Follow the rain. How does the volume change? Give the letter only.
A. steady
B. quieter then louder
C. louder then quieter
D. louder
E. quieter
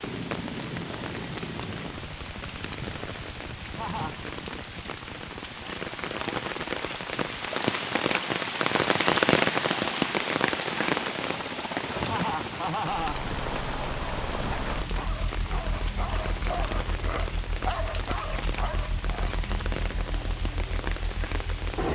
C.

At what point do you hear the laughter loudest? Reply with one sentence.
The loudest moment of the laughter is at 13 seconds.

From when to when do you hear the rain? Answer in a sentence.
You can hear the rain from 0.0 to 21.9 s.